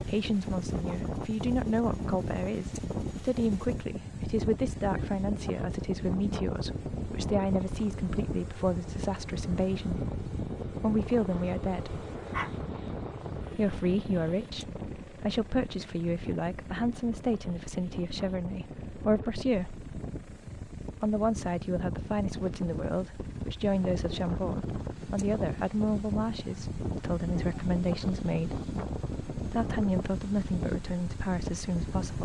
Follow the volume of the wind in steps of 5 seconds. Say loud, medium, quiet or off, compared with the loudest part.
loud, loud, loud, medium, loud, loud, loud.